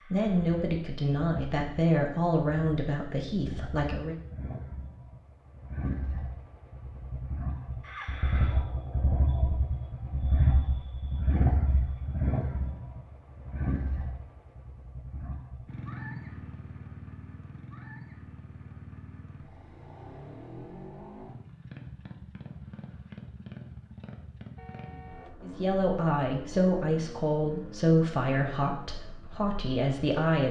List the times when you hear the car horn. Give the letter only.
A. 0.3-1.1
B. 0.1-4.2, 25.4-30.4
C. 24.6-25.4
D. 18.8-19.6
C.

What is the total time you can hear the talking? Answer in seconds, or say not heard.
9 s.